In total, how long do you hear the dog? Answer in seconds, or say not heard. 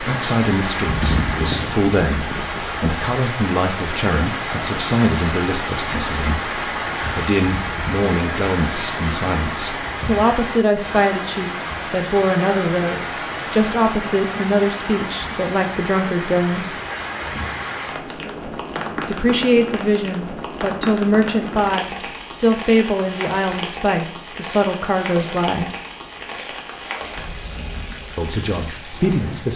not heard.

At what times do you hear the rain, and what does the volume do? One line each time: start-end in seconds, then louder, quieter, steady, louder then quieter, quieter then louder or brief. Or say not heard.
0.0-29.5 quieter.